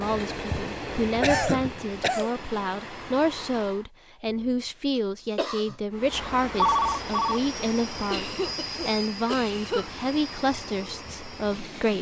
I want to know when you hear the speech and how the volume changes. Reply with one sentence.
You can hear the speech from 0.0 to 11.9 s, at a steady volume.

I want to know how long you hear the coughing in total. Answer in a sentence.
You can hear the coughing for 3 seconds altogether.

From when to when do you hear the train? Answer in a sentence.
You can hear the train from 0.0 to 3.9 s and from 5.9 to 11.9 s.